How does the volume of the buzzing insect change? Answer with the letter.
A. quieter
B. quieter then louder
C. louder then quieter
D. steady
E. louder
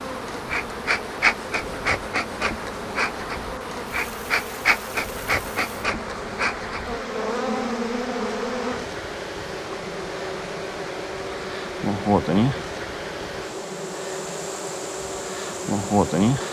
D.